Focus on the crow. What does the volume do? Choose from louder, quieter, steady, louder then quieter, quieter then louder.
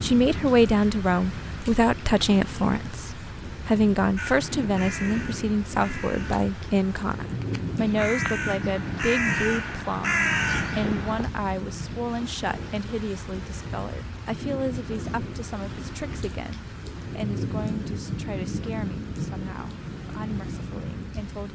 louder.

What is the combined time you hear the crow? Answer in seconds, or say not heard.
7 s.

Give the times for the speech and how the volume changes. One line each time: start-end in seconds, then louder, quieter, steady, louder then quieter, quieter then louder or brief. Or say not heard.
0.0-21.5 quieter.